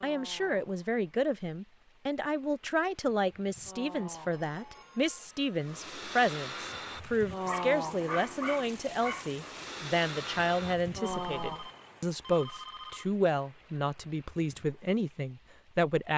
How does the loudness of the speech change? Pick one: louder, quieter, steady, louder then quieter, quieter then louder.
steady.